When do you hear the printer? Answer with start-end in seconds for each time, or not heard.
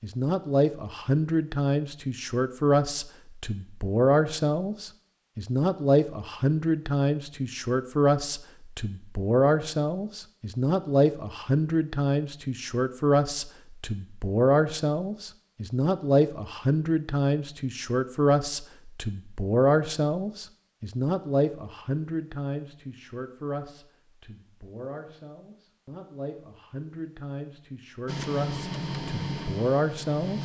28.1-30.4.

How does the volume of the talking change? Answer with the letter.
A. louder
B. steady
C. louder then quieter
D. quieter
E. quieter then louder
D.